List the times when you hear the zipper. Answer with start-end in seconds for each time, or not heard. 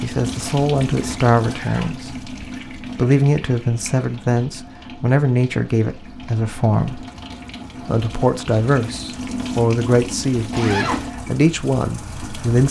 1.4-2.0, 10.5-11.1.